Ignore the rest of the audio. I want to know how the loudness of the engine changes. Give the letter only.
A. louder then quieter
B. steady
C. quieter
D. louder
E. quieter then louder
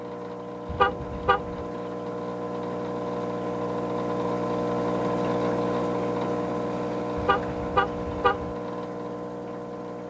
A.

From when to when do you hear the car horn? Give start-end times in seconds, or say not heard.
0.7-1.6, 7.2-8.6.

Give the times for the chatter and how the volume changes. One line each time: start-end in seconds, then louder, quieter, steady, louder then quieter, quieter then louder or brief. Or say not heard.
not heard.